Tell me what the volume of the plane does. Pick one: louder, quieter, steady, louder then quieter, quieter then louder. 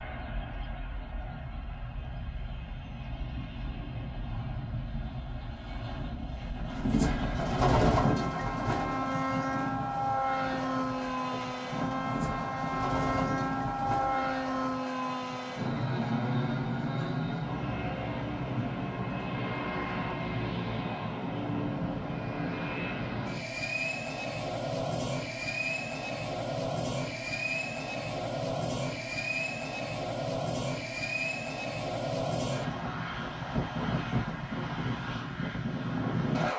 louder.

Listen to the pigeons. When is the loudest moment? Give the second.
8 s.